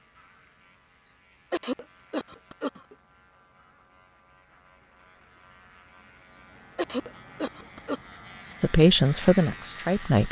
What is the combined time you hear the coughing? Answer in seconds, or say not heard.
3 s.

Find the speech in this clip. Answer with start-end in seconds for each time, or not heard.
8.6-10.2.